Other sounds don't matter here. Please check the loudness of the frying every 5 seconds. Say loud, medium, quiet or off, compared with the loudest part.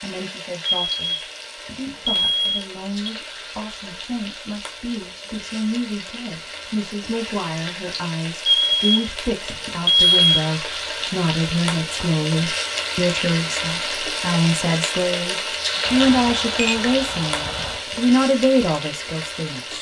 medium, medium, loud, loud.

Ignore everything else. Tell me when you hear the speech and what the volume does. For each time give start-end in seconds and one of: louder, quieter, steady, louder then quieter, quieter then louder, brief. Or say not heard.
0.0-19.7 louder.